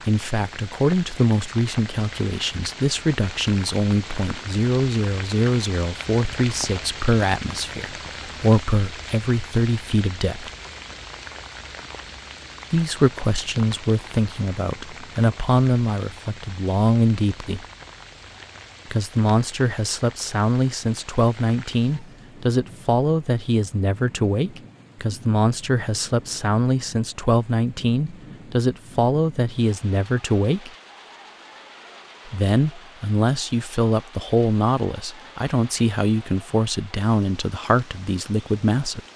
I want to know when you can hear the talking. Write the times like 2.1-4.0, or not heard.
0.1-10.5, 12.7-17.6, 18.9-30.7, 32.2-39.0.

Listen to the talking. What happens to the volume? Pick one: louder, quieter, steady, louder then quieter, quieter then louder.
steady.